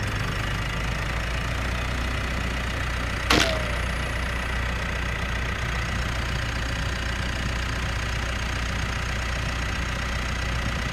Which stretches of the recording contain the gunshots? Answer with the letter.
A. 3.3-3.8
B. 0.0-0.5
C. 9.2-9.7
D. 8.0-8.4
A.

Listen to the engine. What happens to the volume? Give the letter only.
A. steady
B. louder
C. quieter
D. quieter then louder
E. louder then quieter
A.